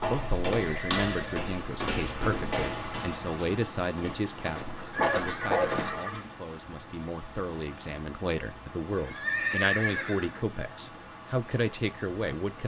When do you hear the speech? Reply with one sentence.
You can hear the speech from 0.1 to 12.6 s.